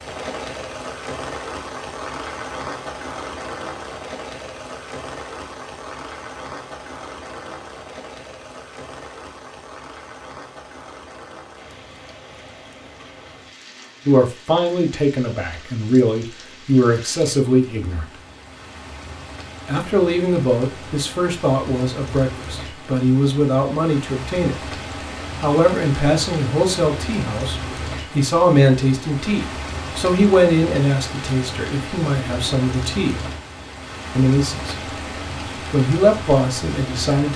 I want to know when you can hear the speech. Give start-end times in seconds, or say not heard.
14.1-18.1, 19.6-24.6, 25.4-33.1, 34.1-34.8, 35.5-37.3.